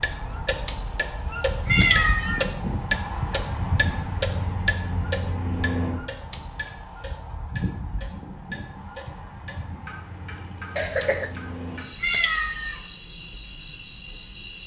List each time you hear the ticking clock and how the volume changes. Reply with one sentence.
You can hear the ticking clock from 0.0 to 14.6 s, getting quieter.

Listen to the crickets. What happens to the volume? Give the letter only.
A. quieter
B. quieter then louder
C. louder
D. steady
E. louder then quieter
A.